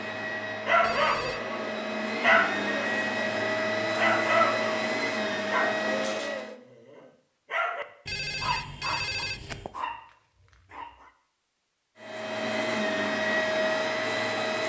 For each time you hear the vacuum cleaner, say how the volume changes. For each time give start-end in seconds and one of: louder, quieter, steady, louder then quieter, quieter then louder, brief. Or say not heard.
0.0-6.5 louder
11.9-14.6 brief.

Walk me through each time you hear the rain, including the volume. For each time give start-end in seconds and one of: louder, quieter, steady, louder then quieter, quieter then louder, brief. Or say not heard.
not heard.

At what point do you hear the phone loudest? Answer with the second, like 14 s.
9 s.